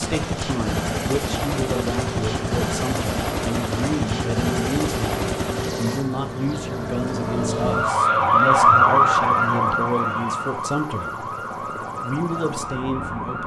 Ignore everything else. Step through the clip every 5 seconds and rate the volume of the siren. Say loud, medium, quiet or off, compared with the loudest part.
quiet, loud, medium.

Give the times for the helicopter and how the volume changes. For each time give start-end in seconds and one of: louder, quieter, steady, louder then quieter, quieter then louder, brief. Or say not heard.
0.0-13.4 quieter.